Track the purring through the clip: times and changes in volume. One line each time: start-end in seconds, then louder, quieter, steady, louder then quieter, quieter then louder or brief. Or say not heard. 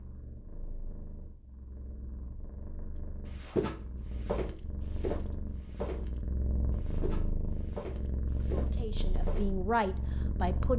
0.0-10.7 louder.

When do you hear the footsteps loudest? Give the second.
4 s.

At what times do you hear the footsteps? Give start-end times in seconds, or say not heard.
3.2-6.2, 6.8-9.6.